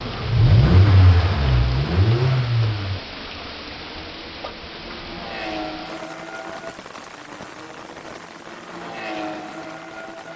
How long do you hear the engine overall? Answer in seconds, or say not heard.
10 s.